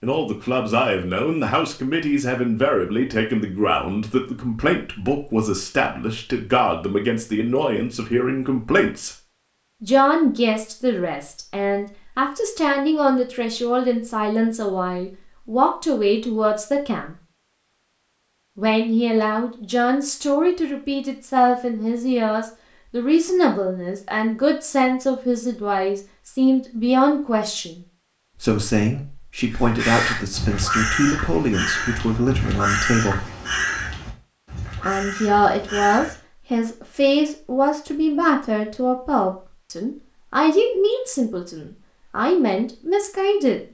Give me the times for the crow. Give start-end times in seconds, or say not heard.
29.5-36.2.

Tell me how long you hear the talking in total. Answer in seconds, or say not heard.
40 s.